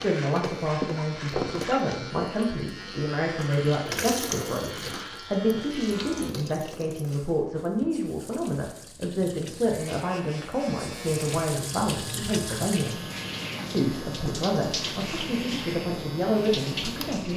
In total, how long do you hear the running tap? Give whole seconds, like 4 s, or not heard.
17 s.